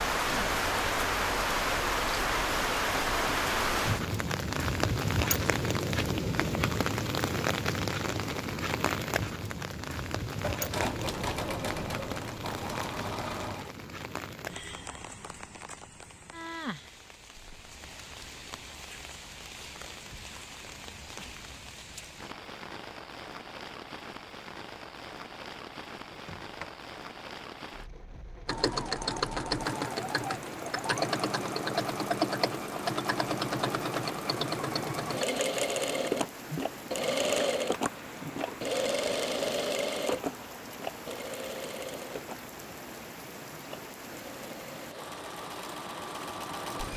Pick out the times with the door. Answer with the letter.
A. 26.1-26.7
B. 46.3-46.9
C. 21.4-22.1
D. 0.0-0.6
A.